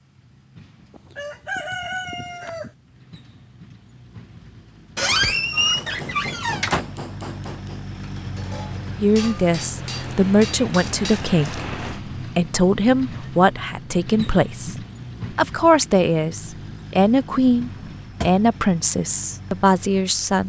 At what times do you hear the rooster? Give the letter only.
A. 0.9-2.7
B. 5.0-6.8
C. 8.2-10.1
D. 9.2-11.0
A.